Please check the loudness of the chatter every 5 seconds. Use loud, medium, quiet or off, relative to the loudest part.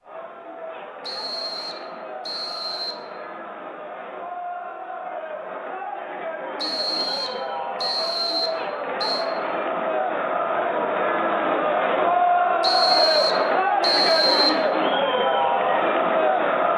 quiet, medium, loud, loud.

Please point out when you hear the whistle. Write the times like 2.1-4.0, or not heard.
1.0-3.0, 6.5-9.3, 12.6-14.6.